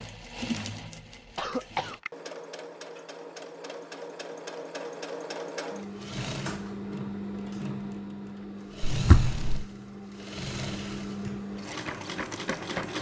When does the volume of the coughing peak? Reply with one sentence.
The volume of the coughing peaks at 9 seconds.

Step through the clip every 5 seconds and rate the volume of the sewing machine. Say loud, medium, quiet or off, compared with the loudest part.
medium, loud, loud.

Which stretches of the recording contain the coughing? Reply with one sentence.
You can hear the coughing from 1.4 to 2.0 s and from 8.9 to 9.7 s.